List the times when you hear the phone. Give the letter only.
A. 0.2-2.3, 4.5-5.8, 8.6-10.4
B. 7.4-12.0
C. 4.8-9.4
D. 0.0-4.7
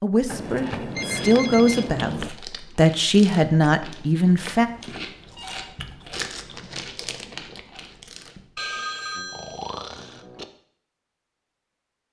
A.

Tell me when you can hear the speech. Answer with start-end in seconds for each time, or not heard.
0.0-4.7.